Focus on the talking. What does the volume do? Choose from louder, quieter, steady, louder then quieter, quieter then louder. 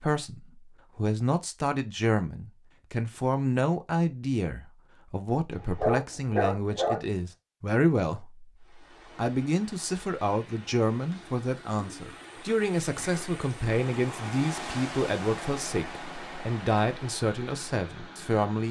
steady.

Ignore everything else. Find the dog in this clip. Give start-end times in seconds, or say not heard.
5.5-7.0.